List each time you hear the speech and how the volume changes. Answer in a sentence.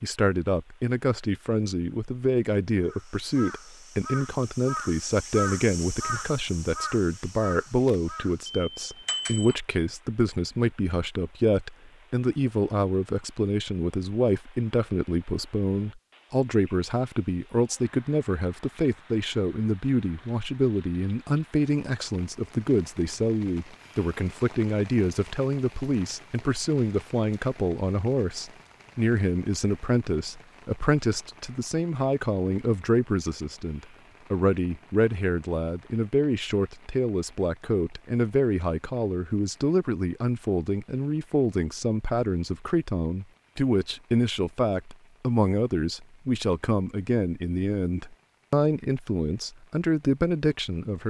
You can hear the speech from 0.0 to 51.0 s, at a steady volume.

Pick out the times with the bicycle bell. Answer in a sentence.
You can hear the bicycle bell from 8.4 to 9.6 s.